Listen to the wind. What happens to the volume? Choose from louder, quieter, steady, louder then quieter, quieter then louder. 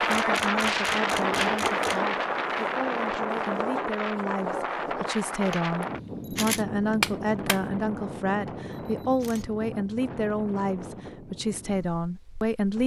quieter.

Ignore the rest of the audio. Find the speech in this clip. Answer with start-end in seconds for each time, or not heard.
0.0-12.8.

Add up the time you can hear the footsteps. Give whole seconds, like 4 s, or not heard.
not heard.